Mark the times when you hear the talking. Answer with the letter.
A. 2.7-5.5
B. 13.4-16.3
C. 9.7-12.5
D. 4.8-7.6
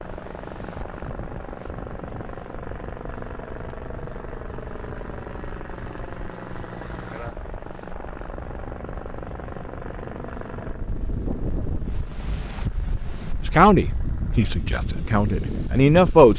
B.